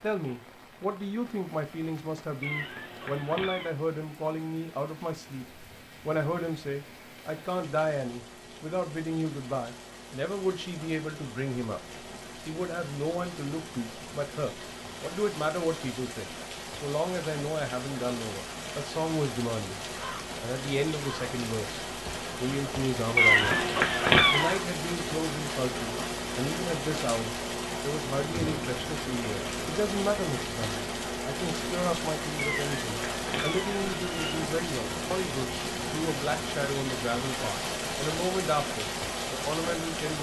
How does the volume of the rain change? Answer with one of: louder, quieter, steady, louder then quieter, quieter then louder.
louder.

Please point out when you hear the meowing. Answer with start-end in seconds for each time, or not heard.
2.4-3.8, 23.1-24.6, 32.4-34.4.